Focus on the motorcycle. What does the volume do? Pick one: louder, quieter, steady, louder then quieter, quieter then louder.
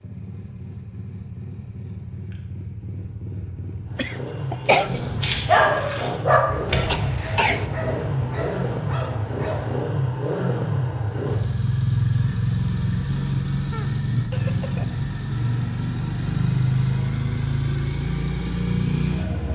louder.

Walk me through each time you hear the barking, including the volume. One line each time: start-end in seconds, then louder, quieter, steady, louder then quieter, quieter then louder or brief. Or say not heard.
4.7-9.9 quieter.